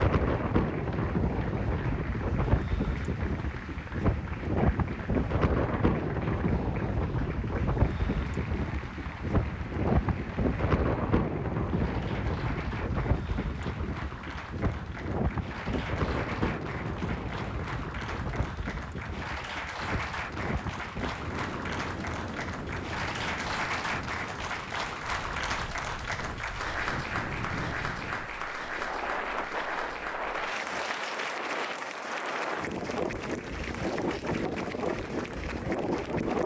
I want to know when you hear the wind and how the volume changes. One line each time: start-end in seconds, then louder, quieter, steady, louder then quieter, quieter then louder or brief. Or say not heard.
0.0-36.4 quieter then louder.